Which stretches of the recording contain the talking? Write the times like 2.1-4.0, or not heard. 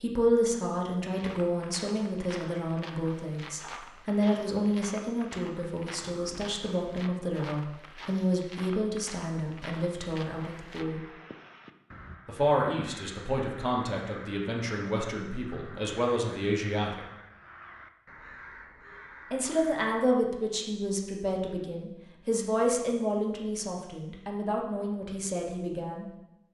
0.0-11.0, 12.2-17.0, 19.3-26.4.